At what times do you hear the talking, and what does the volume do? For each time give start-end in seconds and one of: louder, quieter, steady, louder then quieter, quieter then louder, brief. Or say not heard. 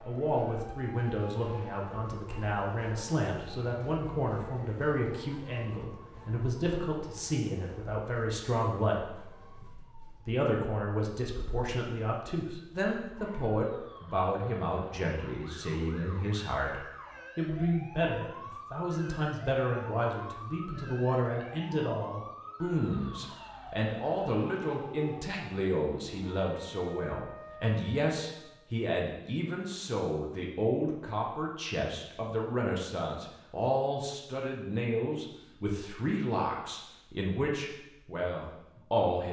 0.1-39.2 steady.